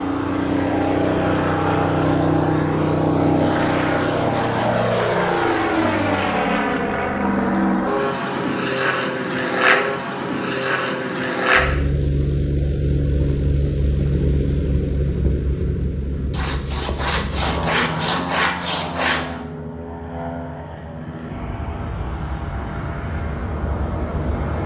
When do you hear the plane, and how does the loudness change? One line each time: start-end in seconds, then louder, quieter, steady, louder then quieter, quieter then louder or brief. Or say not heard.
0.0-24.6 quieter.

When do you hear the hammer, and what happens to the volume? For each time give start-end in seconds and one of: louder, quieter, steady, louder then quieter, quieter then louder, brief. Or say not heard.
not heard.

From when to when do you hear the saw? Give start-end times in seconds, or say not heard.
16.3-19.2.